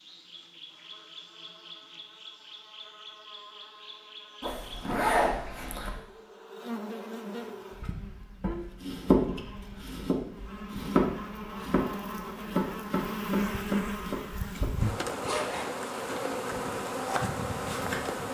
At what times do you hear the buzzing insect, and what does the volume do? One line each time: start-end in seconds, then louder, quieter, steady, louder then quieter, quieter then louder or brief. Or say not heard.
0.0-18.2 louder.